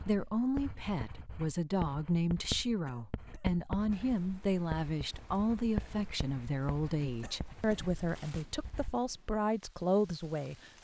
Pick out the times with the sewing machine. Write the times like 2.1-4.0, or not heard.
not heard.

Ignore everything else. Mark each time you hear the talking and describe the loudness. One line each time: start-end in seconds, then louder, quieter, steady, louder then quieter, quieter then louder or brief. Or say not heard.
0.0-10.7 steady.